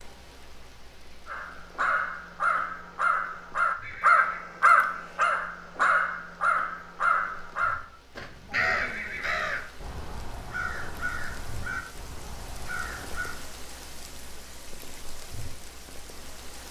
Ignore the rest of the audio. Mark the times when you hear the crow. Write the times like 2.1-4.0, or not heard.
1.2-13.3.